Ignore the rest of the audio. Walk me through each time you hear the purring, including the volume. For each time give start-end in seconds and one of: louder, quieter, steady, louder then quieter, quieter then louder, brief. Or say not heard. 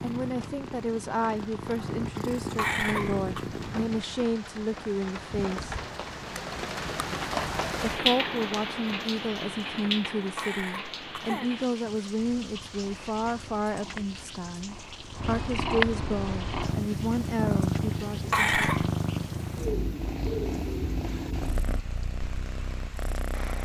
0.0-4.0 louder
12.2-23.5 louder then quieter.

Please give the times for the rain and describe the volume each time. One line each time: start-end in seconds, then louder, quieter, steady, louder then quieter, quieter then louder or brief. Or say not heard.
0.0-23.5 louder then quieter.